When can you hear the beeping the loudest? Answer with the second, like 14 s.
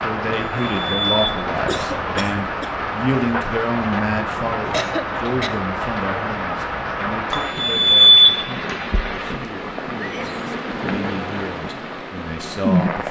8 s.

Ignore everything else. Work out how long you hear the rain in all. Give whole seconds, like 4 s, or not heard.
13 s.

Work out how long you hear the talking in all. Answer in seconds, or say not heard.
13 s.